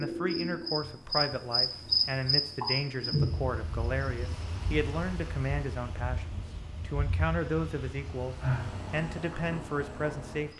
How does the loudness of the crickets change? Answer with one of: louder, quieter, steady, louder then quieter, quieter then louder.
quieter then louder.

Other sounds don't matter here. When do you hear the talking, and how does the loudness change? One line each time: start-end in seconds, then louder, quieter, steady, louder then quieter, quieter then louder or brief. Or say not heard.
0.0-10.5 steady.